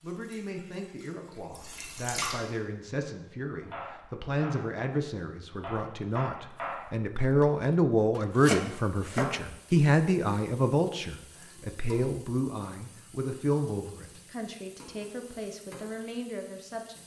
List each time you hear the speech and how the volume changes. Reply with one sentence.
You can hear the speech from 0.0 to 17.0 s, getting louder then quieter.